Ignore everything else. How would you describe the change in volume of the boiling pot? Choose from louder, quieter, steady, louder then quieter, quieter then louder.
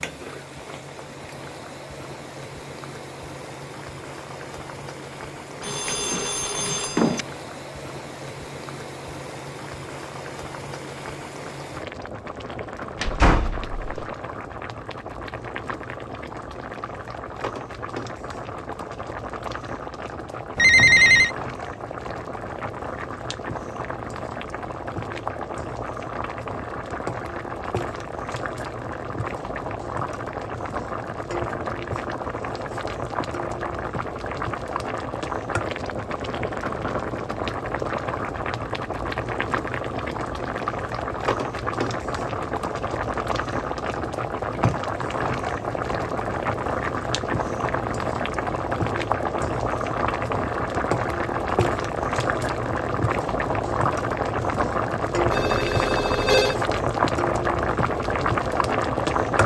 louder.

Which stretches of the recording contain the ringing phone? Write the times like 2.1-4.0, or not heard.
5.6-7.2, 20.6-21.4, 55.3-56.5.